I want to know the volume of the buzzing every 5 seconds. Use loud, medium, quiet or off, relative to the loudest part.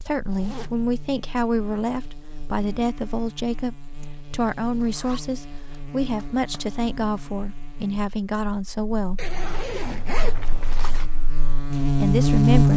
quiet, quiet, loud.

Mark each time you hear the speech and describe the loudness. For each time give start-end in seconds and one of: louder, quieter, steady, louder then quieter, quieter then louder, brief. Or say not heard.
0.0-9.3 steady
11.7-12.7 brief.